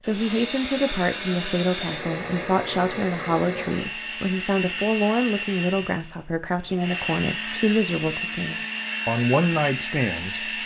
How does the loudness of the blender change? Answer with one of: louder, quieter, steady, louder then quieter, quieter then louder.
steady.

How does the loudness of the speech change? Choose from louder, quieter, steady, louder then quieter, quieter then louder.
steady.